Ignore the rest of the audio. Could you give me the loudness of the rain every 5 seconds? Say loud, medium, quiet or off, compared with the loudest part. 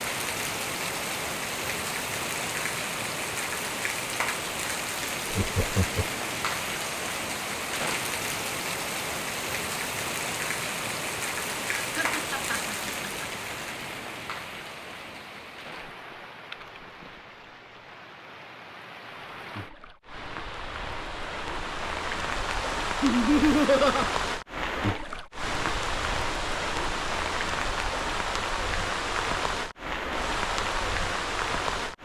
loud, loud, loud, quiet, loud, loud, loud.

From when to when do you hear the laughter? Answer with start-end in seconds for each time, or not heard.
5.3-6.0, 11.8-13.2, 23.0-24.1.